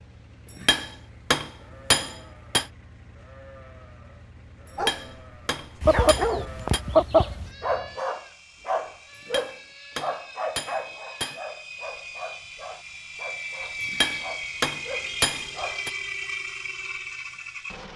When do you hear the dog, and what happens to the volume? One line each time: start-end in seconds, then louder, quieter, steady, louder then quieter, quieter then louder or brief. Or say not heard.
4.8-5.2 brief
5.8-15.8 quieter.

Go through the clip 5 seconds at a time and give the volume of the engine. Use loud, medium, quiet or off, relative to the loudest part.
quiet, quiet, loud, loud.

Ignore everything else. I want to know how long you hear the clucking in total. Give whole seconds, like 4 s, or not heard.
2 s.